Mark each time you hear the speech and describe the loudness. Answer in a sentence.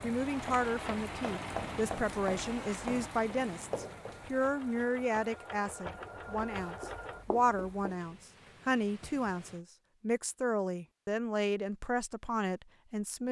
The speech can be heard from 0.0 to 13.2 s, at a steady volume.